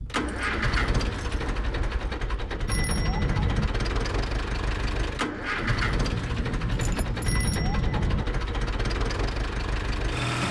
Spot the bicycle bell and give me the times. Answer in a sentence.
You can hear the bicycle bell from 2.6 to 3.7 s and from 7.2 to 8.2 s.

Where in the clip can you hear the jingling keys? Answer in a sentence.
The jingling keys can be heard from 0.1 to 2.2 s and from 5.6 to 7.7 s.